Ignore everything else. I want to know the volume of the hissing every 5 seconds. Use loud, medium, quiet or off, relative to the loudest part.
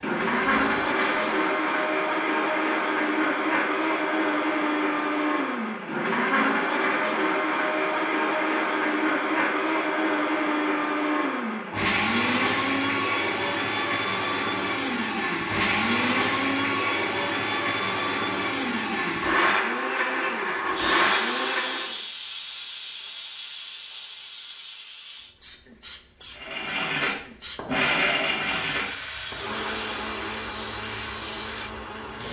medium, off, off, off, loud, loud, loud.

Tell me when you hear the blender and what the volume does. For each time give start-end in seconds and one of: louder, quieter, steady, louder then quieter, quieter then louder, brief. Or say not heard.
0.0-22.0 steady
26.4-32.2 quieter.